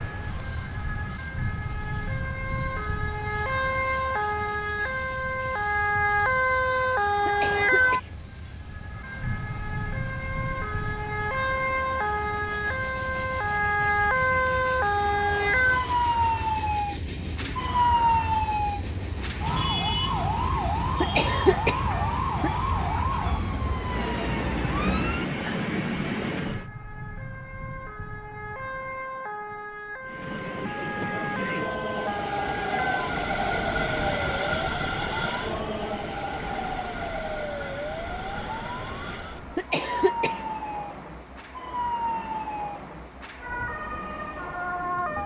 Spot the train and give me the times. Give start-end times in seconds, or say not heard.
0.0-26.6, 30.0-45.2.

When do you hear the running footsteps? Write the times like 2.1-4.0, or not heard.
not heard.